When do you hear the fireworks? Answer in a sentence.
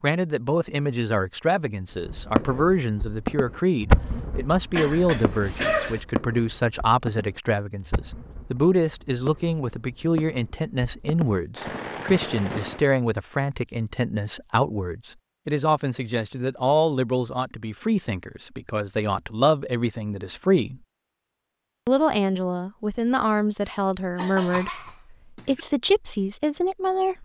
You can hear the fireworks from 1.9 to 12.8 s.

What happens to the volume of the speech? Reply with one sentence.
The volume of the speech stays about the same.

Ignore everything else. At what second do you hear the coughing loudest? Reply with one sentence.
The loudest moment of the coughing is at 6 seconds.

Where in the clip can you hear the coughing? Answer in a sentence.
You can hear the coughing from 4.7 to 6.0 s and from 23.6 to 25.6 s.